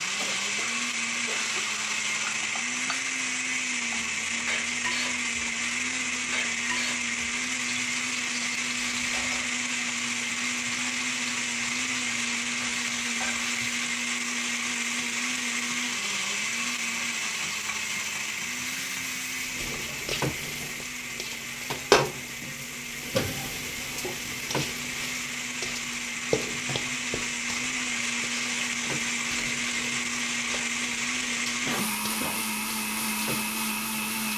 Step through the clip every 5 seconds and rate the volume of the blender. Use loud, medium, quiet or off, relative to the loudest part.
loud, loud, loud, loud, medium, loud, loud.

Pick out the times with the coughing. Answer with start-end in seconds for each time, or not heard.
0.1-1.6, 31.6-32.4.